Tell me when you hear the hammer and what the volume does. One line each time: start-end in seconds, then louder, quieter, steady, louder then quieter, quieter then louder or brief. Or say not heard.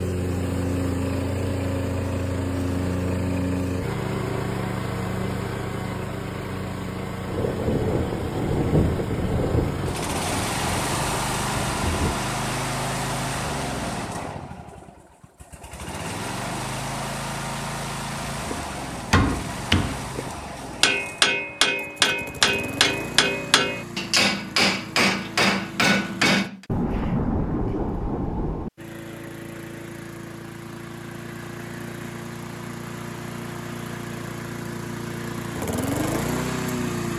18.4-26.6 steady.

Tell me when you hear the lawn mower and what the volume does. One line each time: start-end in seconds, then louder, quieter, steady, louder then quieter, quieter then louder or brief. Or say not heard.
0.0-26.5 quieter
28.8-37.1 louder.